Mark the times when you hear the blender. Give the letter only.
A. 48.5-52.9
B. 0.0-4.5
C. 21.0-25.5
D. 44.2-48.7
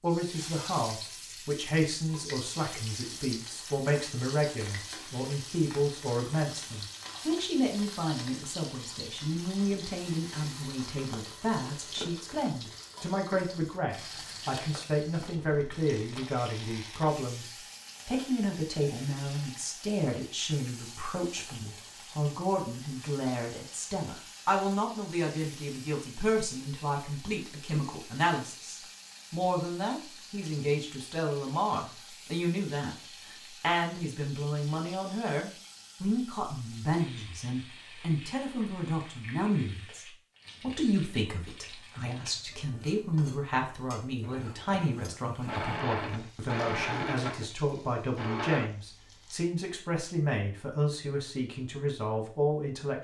D.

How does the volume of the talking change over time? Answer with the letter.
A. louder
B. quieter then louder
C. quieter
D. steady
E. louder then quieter
D.